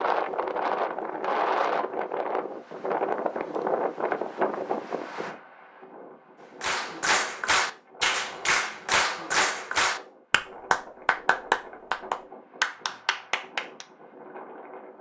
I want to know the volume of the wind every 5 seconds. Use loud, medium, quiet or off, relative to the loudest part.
loud, quiet, quiet.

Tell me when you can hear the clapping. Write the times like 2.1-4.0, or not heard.
6.6-13.8.